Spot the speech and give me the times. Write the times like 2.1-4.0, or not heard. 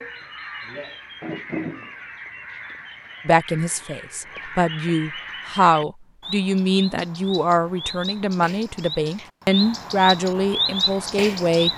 3.2-11.7.